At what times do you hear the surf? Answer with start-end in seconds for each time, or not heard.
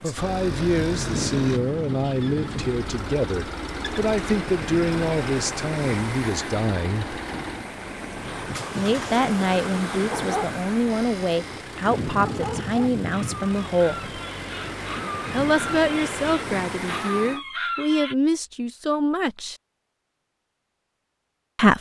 0.0-17.4.